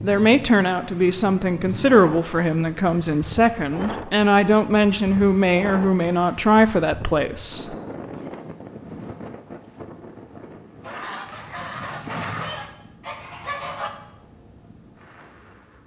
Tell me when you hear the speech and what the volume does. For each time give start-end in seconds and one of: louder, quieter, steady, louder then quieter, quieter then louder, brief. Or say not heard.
0.0-7.8 steady.